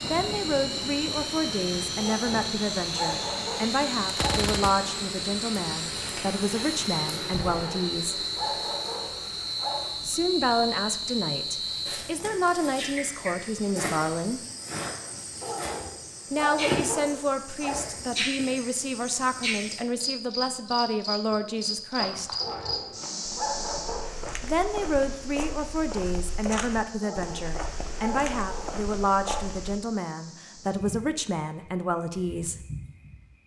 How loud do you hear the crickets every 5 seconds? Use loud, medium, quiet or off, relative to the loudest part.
loud, loud, loud, loud, loud, quiet, medium.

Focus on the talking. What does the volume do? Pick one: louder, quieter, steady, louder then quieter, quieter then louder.
steady.